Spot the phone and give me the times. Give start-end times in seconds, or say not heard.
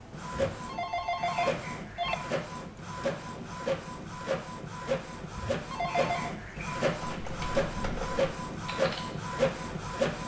0.5-2.2, 5.3-6.3.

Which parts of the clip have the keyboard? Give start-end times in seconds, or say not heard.
6.9-9.1.